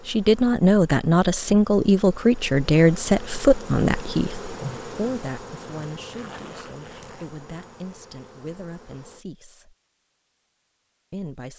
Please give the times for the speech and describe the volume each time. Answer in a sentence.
The speech can be heard from 0.1 to 9.8 s, getting quieter; and briefly from 11.1 to 11.5 s.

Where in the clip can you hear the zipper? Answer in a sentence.
You can hear the zipper from 6.1 to 7.3 s.